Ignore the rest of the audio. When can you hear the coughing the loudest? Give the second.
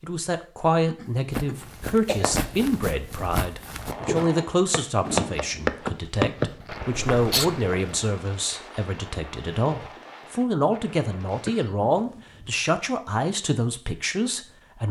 7 s.